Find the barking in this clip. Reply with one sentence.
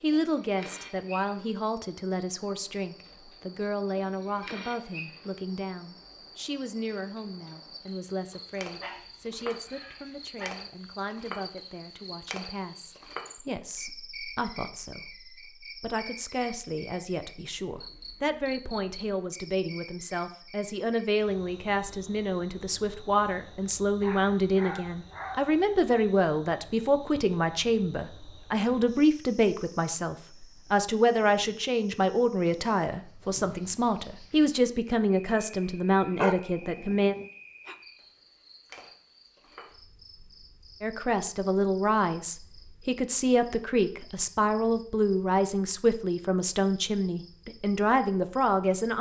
The barking can be heard from 8.3 to 10.7 s, from 24.0 to 25.6 s and from 36.1 to 37.8 s.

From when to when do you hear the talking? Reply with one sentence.
You can hear the talking from 0.0 to 37.1 s and from 40.8 to 48.9 s.